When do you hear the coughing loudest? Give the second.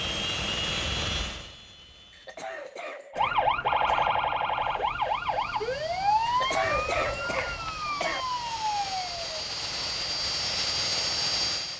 7 s.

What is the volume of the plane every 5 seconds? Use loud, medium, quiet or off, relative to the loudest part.
medium, medium, loud.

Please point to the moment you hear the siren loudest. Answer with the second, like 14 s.
4 s.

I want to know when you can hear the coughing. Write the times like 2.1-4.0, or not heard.
2.1-4.1, 6.2-8.2.